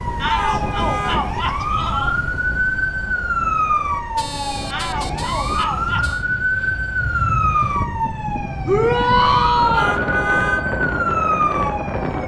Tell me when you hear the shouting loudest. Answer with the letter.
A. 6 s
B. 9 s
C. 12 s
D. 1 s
B.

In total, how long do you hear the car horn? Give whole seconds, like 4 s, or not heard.
4 s.